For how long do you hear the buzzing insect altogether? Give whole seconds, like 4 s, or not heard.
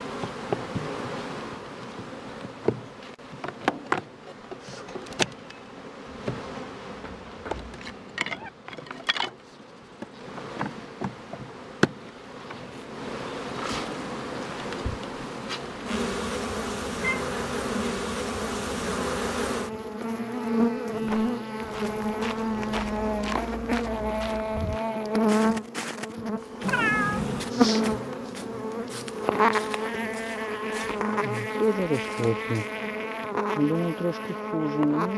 35 s.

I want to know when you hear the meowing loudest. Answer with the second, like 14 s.
27 s.